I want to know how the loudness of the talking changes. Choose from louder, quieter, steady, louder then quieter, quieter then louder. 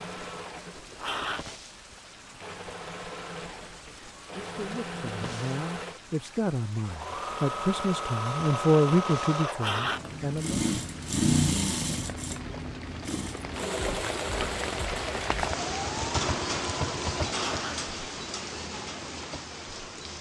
louder then quieter.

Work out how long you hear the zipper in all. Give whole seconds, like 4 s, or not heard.
2 s.